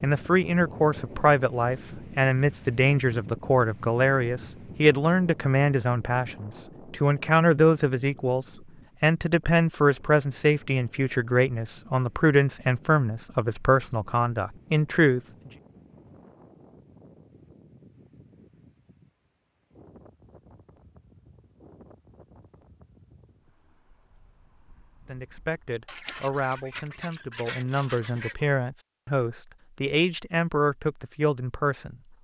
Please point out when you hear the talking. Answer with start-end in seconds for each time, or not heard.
0.0-15.5, 25.1-31.9.